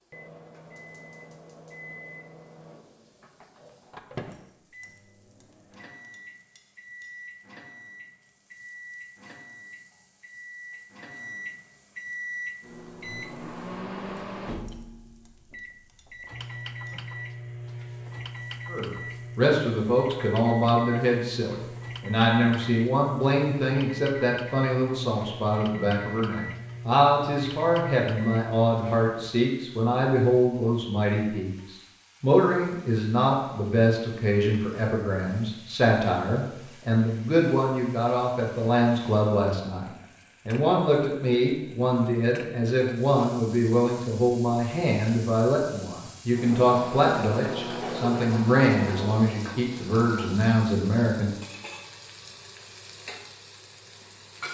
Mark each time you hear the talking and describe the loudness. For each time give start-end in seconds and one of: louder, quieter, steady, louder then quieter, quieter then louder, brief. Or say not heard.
18.7-51.4 steady.